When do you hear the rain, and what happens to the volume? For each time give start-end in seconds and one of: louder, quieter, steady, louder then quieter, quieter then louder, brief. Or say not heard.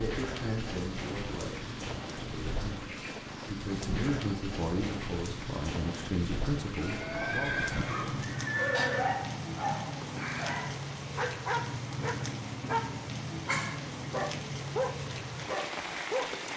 0.0-16.5 steady.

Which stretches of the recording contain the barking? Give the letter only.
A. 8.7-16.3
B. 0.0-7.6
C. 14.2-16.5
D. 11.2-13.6
A.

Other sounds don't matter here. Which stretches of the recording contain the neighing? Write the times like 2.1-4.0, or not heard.
6.8-9.2.